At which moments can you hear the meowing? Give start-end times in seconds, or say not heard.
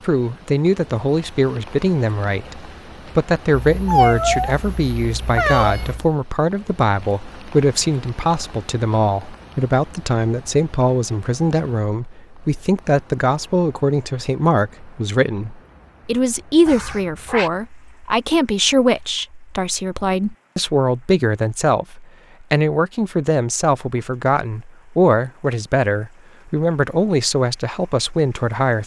3.7-6.1, 16.6-17.5.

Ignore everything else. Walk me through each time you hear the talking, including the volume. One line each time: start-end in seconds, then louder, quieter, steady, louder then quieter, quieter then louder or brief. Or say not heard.
0.1-28.8 steady.